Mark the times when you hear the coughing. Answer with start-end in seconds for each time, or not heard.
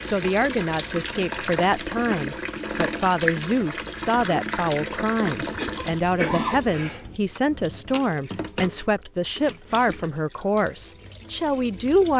5.5-7.2.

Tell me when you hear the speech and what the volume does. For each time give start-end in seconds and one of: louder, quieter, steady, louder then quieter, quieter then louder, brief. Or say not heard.
0.0-12.1 steady.